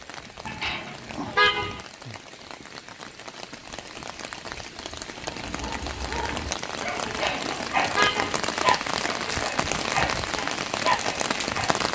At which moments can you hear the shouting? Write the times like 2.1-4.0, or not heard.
not heard.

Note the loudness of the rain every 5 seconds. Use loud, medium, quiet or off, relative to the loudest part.
quiet, loud, loud.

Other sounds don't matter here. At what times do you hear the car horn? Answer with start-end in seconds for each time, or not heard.
0.5-1.9, 7.0-8.4.